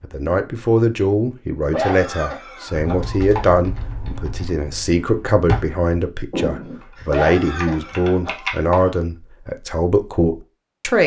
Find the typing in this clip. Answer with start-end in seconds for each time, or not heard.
2.8-8.6.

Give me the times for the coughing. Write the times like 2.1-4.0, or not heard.
1.6-3.5, 7.0-8.9.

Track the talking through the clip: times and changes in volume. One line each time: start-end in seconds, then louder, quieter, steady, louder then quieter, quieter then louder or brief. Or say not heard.
0.0-11.0 steady.